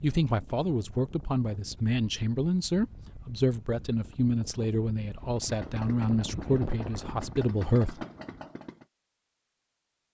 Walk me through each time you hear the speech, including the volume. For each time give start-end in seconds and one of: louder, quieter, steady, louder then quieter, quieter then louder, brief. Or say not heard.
0.0-8.1 steady.